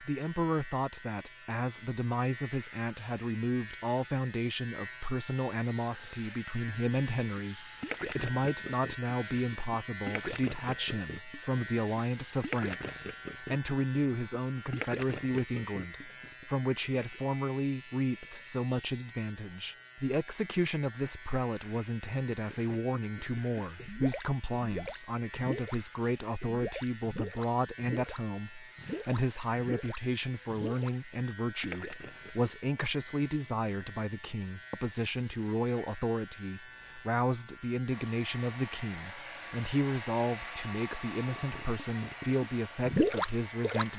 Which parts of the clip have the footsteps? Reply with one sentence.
You can't hear the footsteps here.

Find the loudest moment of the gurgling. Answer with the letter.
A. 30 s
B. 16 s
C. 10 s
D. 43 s
D.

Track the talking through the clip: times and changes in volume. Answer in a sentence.
The talking can be heard from 0.0 to 43.9 s, at a steady volume.